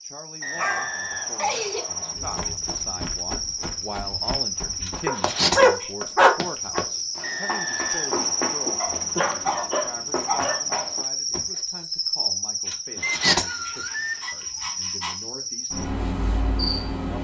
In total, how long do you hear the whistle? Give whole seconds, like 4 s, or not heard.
5 s.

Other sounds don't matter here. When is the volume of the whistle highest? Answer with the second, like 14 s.
13 s.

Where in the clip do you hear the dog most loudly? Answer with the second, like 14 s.
6 s.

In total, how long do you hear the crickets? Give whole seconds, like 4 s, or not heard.
17 s.